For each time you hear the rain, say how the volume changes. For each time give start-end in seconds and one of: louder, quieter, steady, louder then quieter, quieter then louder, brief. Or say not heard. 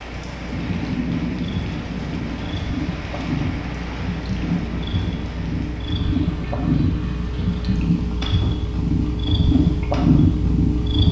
0.0-11.0 quieter.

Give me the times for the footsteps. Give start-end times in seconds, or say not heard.
not heard.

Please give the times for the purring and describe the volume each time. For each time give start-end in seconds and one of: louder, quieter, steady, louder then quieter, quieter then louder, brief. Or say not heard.
0.0-11.0 louder.